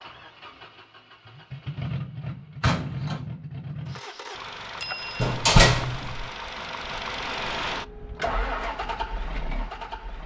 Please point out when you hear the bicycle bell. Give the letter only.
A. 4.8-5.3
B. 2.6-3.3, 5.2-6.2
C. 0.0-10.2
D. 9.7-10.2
A.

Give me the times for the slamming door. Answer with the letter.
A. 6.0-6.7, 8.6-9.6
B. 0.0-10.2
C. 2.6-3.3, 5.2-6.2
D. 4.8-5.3
C.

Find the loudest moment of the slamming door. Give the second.
6 s.